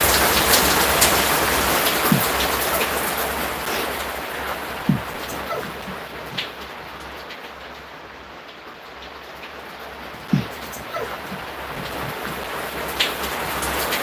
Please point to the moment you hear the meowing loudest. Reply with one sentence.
The volume of the meowing peaks at 2 seconds.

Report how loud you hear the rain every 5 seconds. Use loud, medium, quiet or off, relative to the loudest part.
loud, quiet, medium.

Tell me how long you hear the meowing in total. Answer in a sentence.
You can hear the meowing for 5 seconds altogether.